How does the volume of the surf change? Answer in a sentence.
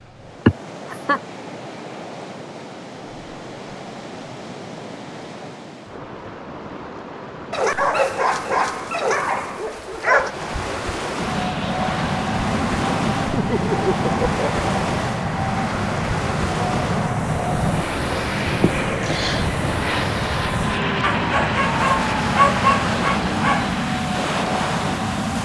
The loudness of the surf goes up.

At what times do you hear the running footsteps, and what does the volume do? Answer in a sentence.
You can't hear the running footsteps here.